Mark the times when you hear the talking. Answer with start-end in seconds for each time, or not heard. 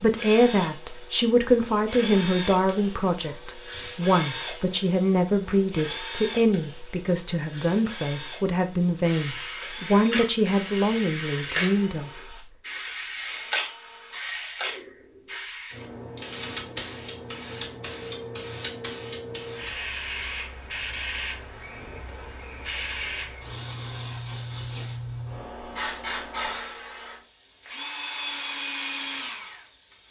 0.0-12.2.